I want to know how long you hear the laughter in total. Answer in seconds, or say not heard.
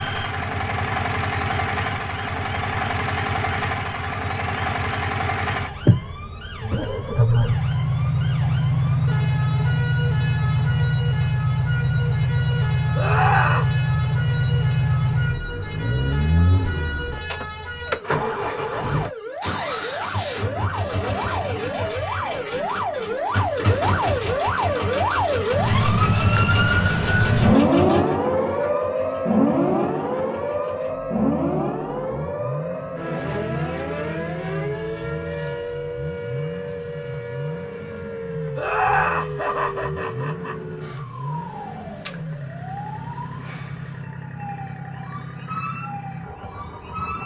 3 s.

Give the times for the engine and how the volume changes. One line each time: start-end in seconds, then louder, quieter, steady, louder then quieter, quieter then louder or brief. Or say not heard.
0.0-47.2 quieter.